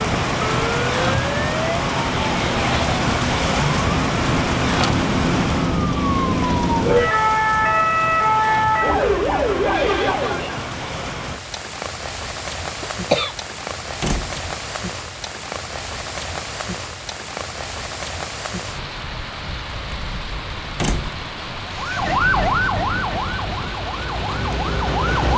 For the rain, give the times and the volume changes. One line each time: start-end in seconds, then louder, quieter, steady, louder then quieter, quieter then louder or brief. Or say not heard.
0.0-25.3 quieter.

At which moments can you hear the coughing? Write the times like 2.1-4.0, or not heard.
12.8-13.3.